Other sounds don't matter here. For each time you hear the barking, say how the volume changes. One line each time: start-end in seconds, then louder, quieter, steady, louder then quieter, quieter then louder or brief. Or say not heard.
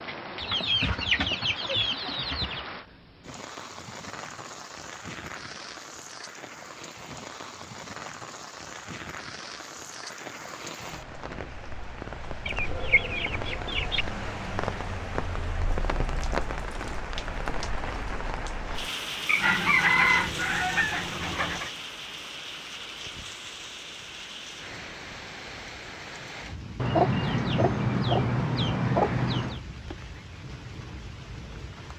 not heard.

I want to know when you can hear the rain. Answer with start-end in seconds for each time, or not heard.
0.0-31.9.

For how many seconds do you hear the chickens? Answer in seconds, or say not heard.
9 s.